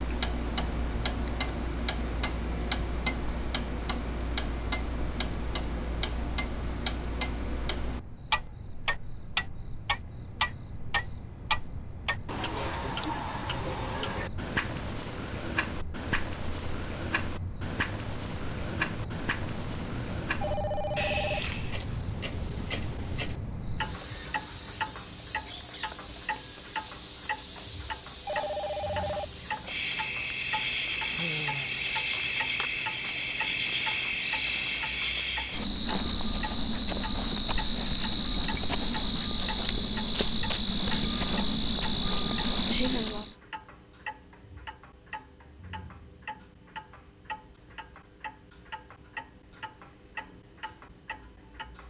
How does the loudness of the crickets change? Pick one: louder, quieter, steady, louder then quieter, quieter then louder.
louder.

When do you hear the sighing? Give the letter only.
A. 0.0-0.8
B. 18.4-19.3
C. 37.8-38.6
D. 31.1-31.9
D.